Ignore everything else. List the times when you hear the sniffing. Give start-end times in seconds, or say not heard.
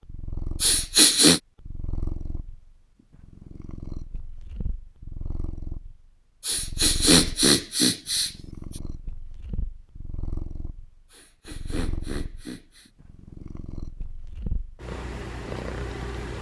0.6-1.4, 6.5-8.3, 11.1-12.9.